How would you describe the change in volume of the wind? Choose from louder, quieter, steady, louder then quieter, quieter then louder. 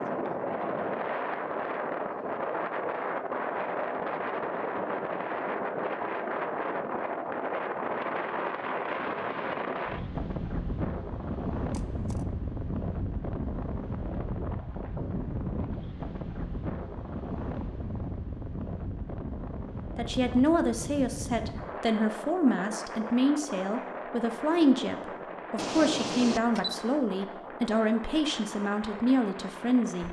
quieter.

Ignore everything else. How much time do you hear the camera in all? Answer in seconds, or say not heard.
2 s.